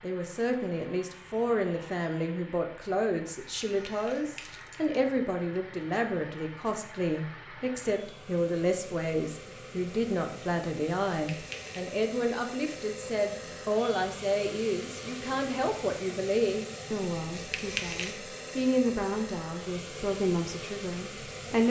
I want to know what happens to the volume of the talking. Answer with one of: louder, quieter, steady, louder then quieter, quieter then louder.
steady.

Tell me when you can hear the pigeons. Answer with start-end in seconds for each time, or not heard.
not heard.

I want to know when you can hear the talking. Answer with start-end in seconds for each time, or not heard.
0.0-21.6.